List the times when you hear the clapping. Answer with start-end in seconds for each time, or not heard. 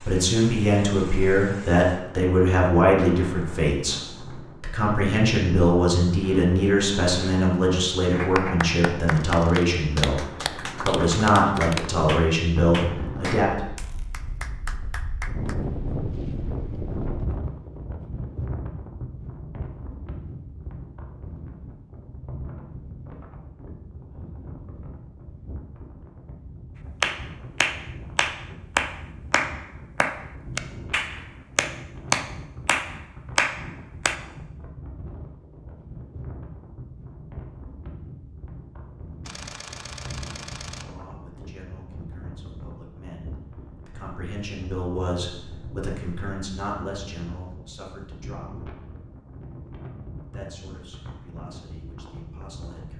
8.1-15.6, 27.0-34.1.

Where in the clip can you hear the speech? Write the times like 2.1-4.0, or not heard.
0.0-13.7, 40.8-48.7, 50.2-52.9.